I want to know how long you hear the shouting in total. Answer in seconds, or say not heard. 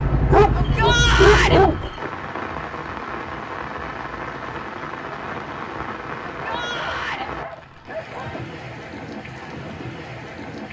2 s.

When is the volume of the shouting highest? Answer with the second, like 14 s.
1 s.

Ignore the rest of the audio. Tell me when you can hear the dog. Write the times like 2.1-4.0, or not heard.
0.3-2.0, 6.4-8.4.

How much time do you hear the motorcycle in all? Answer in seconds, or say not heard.
2 s.